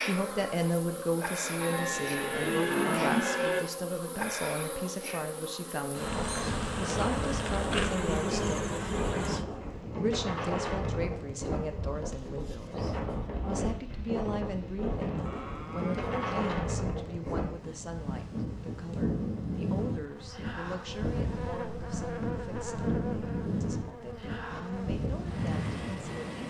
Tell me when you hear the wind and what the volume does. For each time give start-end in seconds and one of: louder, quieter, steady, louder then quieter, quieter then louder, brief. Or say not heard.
6.0-26.4 steady.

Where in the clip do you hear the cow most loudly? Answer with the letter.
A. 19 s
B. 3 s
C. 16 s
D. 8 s
B.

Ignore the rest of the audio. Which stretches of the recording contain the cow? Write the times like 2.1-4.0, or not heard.
1.6-3.6, 15.2-16.4.